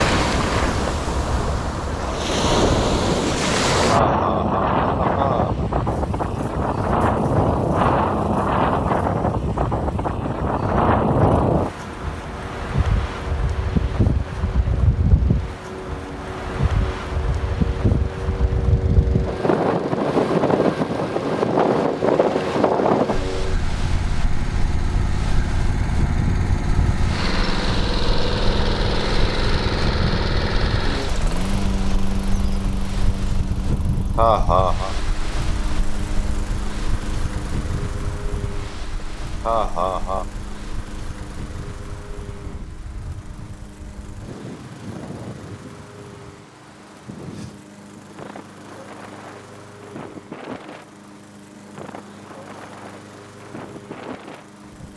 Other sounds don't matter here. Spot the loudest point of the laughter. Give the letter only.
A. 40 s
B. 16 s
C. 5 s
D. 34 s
D.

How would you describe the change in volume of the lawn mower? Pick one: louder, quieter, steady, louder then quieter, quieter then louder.
louder then quieter.